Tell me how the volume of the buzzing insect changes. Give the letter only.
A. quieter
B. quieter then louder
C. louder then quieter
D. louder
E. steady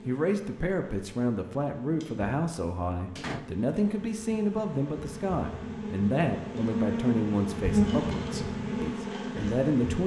D.